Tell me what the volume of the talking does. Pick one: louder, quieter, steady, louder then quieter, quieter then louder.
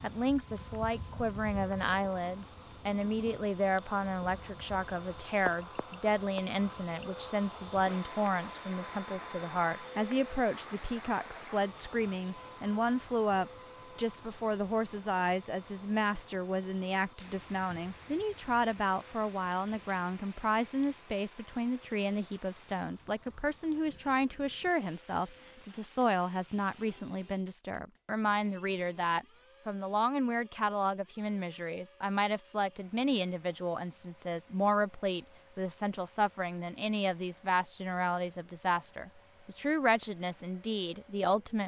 steady.